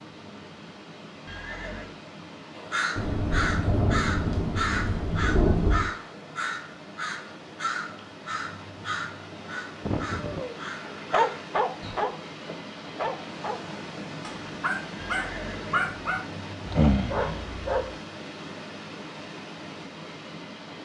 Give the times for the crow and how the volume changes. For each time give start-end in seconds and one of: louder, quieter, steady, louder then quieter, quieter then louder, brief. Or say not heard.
2.5-12.0 quieter.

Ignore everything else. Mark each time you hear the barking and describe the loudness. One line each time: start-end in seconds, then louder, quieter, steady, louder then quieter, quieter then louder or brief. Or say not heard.
10.2-17.9 quieter then louder.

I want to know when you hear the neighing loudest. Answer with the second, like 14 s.
10 s.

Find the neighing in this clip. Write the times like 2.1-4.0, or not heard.
1.2-1.9, 9.8-10.5, 14.9-15.9.